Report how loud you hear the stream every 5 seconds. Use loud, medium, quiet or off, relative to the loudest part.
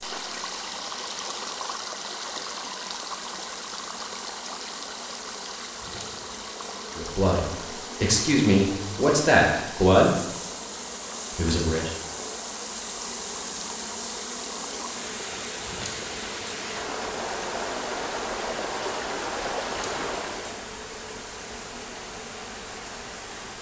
loud, medium, medium, loud, medium.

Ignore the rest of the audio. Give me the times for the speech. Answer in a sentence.
The speech can be heard from 7.0 to 10.2 s and from 11.3 to 11.9 s.